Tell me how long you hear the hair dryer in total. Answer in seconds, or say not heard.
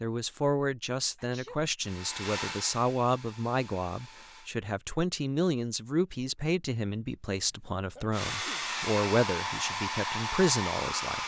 6 s.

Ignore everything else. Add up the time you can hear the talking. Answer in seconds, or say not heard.
11 s.